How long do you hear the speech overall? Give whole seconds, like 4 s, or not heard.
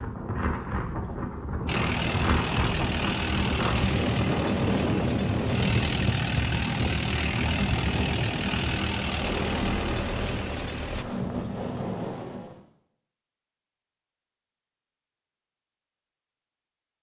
not heard.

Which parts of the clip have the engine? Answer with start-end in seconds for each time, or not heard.
1.6-11.1.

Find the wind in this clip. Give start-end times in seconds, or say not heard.
0.0-12.6.